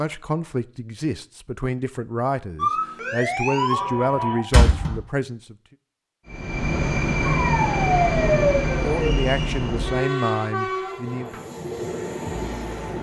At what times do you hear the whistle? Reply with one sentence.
The whistle can't be heard in this clip.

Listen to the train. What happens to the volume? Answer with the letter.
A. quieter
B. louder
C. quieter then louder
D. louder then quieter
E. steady
A.